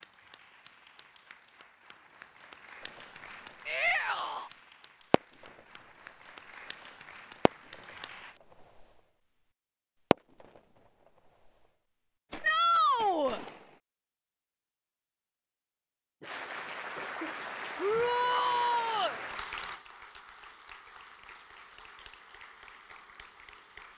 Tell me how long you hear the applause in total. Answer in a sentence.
You can hear the applause for 16 seconds altogether.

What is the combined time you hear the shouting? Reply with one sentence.
The shouting can be heard for 3 seconds in total.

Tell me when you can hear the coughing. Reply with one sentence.
The coughing can be heard from 16.2 to 17.4 s.